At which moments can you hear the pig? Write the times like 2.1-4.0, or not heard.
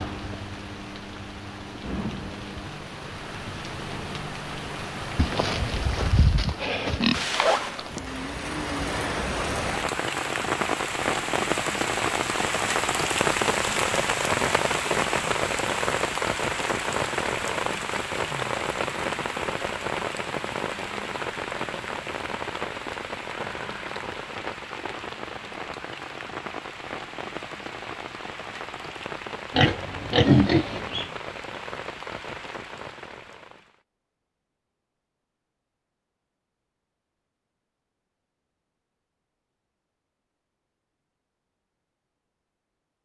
5.2-7.2, 29.5-31.1.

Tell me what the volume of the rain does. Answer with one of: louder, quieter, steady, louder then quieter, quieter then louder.
louder then quieter.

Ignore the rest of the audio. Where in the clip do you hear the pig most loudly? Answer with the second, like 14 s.
30 s.